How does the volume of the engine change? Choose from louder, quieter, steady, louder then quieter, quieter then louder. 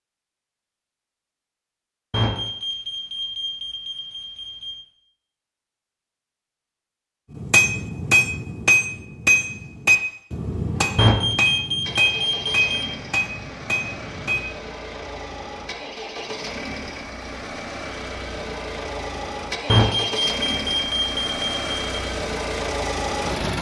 louder.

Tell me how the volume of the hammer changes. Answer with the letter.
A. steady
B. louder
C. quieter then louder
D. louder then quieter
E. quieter
E.